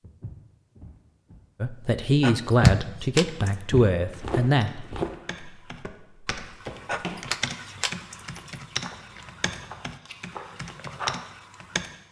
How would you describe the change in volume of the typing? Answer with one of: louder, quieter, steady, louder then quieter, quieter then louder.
louder.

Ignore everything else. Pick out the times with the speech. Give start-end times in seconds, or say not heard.
1.6-5.0.